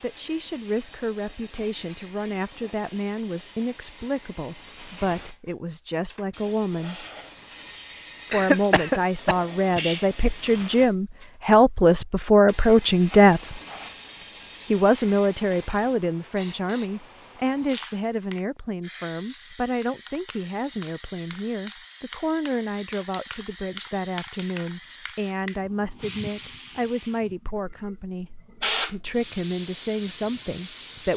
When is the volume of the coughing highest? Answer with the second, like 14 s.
9 s.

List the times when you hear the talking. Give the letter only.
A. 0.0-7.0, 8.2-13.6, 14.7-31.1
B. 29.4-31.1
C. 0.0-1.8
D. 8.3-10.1
A.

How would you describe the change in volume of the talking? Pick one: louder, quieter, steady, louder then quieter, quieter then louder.
louder then quieter.